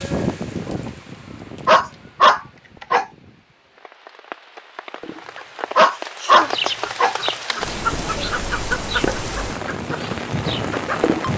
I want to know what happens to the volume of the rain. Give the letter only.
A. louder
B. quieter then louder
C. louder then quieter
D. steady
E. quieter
B.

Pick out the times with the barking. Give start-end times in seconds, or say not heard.
1.6-3.0, 5.8-7.6.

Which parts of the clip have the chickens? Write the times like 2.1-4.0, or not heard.
4.9-11.3.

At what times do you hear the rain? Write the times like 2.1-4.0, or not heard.
0.0-11.3.